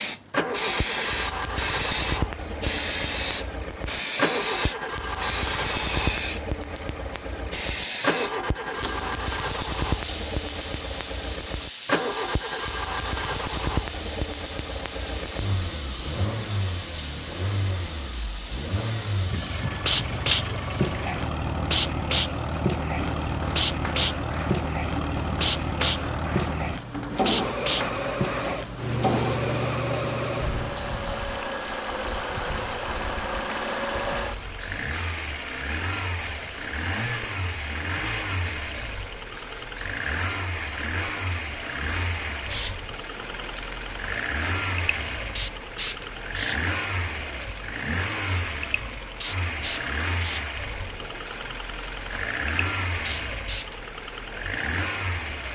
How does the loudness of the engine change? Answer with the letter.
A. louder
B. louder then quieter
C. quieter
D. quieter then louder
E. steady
E.